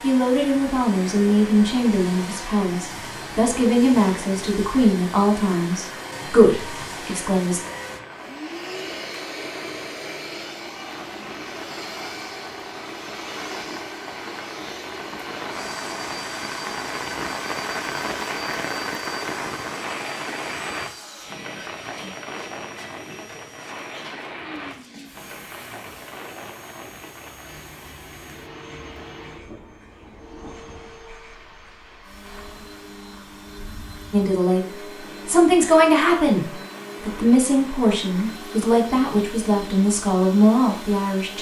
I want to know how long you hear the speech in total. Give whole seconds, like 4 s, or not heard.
15 s.